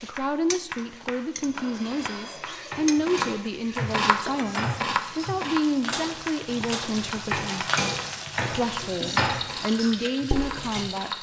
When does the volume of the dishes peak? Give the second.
9 s.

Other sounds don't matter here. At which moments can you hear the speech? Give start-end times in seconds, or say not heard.
0.0-7.7, 8.5-11.1.